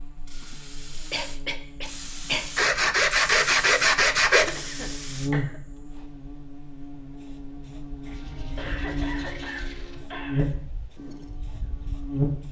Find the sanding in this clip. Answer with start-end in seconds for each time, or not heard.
2.5-4.5, 8.0-10.1.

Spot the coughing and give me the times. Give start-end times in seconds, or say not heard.
0.5-2.5, 4.3-5.6, 8.6-10.6.